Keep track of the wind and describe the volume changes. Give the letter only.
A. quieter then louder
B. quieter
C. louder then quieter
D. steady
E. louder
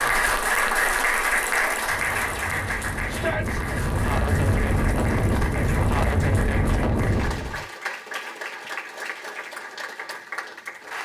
E.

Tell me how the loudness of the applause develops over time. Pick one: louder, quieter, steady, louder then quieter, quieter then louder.
quieter.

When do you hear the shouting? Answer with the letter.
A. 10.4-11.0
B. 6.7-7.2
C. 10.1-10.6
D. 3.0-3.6
D.